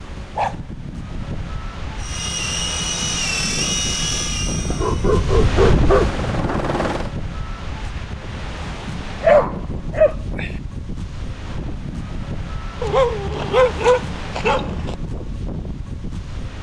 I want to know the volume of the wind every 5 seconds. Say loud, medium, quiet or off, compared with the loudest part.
medium, loud, medium, medium.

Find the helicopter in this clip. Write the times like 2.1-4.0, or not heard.
2.0-7.1.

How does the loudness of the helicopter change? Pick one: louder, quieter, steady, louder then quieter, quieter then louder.
quieter then louder.